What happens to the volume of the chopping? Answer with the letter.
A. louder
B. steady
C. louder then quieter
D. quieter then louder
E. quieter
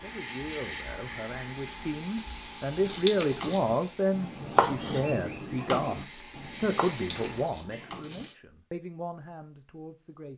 C.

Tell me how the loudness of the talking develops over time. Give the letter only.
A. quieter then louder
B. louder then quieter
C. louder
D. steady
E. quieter
B.